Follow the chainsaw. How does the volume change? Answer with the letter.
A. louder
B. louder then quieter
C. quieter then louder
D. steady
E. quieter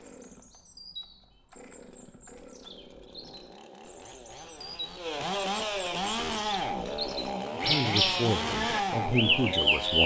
A.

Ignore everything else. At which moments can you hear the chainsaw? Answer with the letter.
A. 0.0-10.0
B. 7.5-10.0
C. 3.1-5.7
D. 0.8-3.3
A.